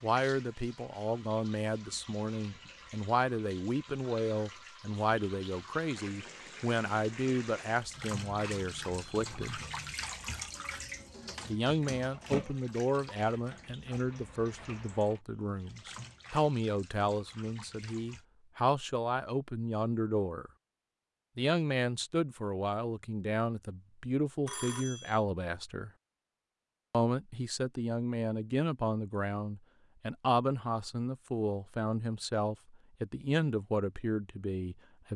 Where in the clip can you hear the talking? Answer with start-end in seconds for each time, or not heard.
0.0-9.6, 11.4-20.5, 21.4-25.9, 26.9-35.1.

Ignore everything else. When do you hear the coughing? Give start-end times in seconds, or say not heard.
not heard.